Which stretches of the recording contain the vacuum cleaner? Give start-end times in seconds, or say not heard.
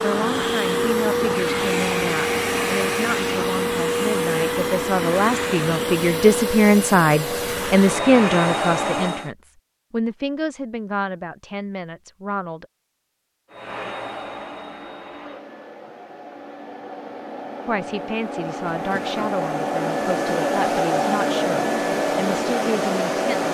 0.0-9.3, 13.5-23.4.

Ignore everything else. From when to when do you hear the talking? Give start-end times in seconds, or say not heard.
0.0-12.7, 17.6-23.4.